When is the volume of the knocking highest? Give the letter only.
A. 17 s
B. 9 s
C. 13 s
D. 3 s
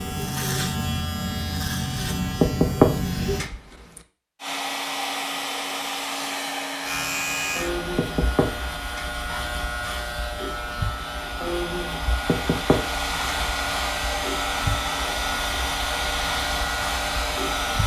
D.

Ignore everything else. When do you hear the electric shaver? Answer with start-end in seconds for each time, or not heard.
0.0-3.5, 6.8-17.8.